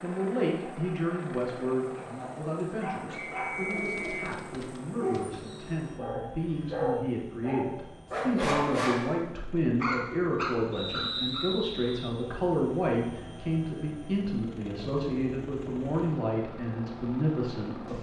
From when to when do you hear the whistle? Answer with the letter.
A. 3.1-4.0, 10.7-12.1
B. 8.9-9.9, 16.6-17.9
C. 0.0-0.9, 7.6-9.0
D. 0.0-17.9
A.